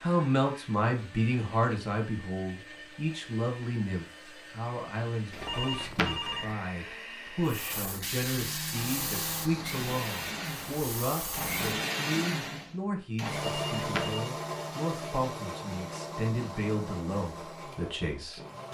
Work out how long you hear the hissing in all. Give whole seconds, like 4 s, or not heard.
4 s.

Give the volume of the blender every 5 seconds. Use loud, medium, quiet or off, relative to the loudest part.
quiet, medium, loud, medium.